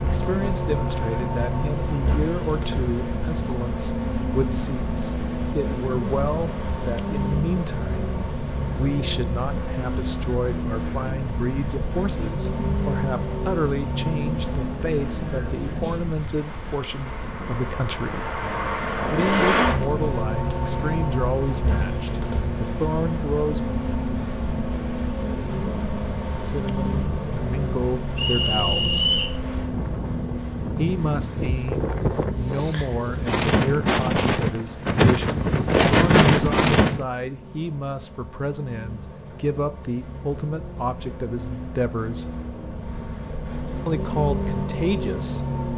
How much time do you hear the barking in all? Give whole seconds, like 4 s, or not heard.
not heard.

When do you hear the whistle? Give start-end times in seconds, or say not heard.
28.1-29.4.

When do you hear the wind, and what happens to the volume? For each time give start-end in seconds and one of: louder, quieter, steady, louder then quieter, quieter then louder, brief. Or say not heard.
0.0-37.0 louder.